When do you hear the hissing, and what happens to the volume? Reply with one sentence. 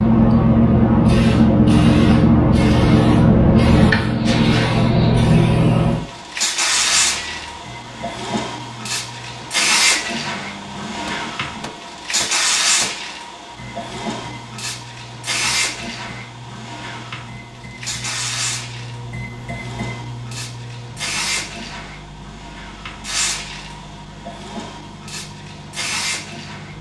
You can hear the hissing from 0.0 to 26.7 s, getting quieter.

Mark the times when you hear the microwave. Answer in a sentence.
The microwave can be heard from 6.8 to 26.7 s.